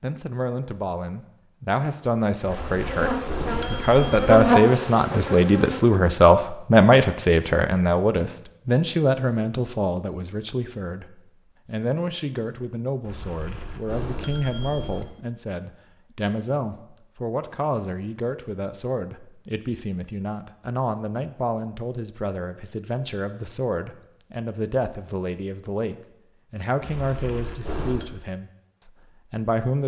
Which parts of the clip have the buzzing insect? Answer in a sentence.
The buzzing insect can be heard from 2.5 to 5.8 s.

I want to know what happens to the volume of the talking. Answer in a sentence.
The loudness of the talking goes down.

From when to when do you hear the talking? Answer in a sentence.
You can hear the talking from 0.0 to 29.8 s.